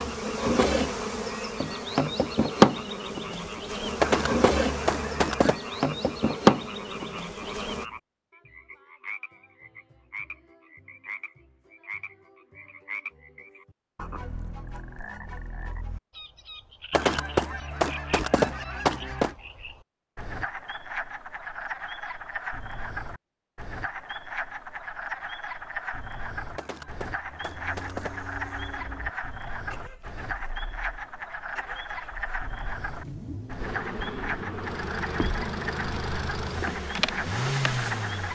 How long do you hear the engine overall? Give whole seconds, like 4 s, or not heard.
11 s.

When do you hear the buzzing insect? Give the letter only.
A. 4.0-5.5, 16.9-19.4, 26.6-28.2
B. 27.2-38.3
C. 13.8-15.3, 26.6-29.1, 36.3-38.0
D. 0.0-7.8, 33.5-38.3
D.